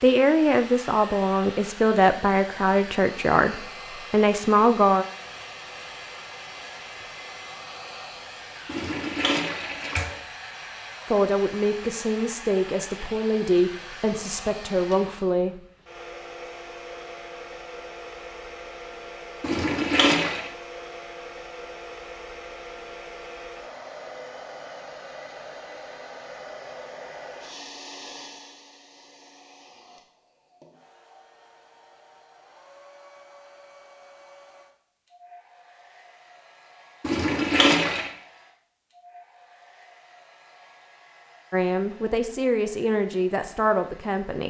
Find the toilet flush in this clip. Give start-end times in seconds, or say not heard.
8.7-10.2, 19.4-20.5, 37.0-38.1.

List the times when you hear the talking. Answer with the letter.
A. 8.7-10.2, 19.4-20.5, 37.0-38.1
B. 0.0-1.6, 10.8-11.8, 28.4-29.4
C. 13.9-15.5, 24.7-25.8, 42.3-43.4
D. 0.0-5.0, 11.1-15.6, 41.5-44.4
D.